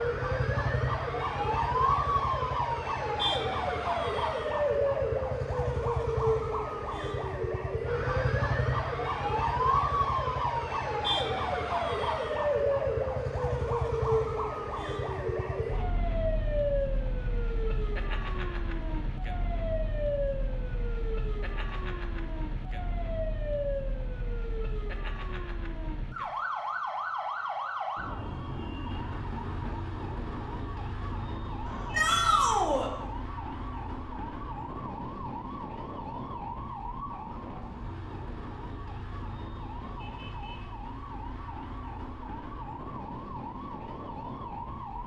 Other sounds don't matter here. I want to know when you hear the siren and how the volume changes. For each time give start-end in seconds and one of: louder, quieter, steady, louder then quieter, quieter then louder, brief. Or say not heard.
0.0-45.0 quieter.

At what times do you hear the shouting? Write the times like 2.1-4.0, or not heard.
31.9-32.9.